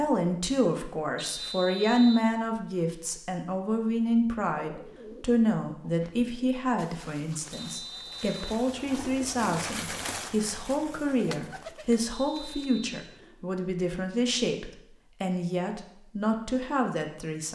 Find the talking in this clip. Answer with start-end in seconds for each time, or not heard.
0.0-17.5.